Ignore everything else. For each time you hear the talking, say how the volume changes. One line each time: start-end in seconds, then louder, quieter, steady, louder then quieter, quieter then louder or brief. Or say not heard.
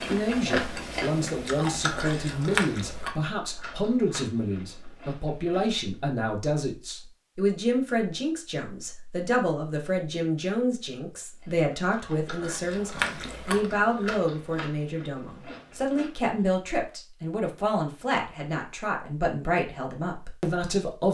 0.1-21.0 steady.